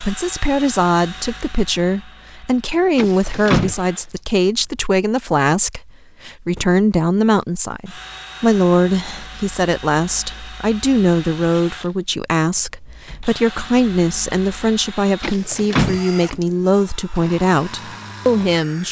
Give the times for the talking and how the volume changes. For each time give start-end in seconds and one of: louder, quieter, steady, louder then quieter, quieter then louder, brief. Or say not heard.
0.0-18.8 steady.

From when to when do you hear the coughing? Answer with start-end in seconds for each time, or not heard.
not heard.